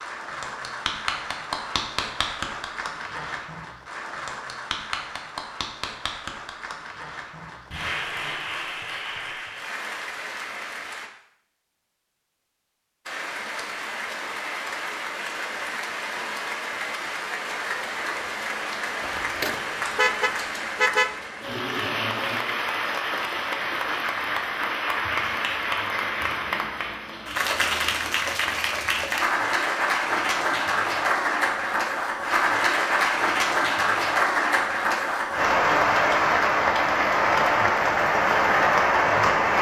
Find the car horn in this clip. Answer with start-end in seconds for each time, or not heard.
19.0-21.2.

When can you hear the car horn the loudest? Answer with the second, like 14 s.
21 s.